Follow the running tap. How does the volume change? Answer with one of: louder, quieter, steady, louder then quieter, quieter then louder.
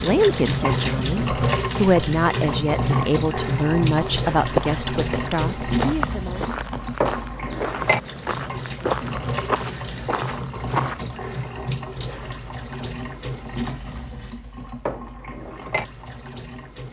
quieter.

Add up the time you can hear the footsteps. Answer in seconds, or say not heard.
7 s.